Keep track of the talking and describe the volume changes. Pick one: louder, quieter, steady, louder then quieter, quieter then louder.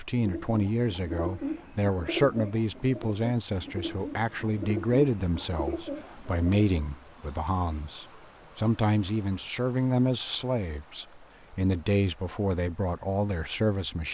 steady.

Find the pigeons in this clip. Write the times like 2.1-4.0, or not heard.
0.1-6.8.